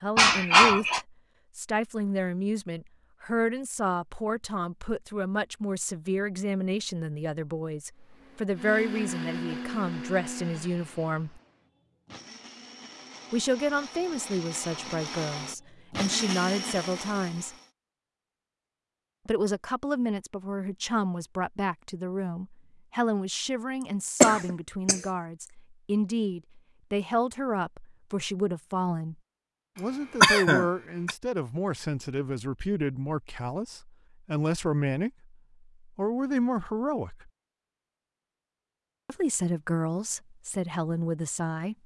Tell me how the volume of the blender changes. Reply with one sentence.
The volume of the blender goes down, then up.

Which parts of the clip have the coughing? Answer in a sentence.
You can hear the coughing from 0.1 to 1.0 s, from 24.2 to 25.0 s and from 30.2 to 31.1 s.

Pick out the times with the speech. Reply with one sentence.
You can hear the speech from 0.0 to 11.4 s, from 13.3 to 17.6 s, from 19.2 to 29.1 s, from 29.8 to 37.3 s and from 39.0 to 41.8 s.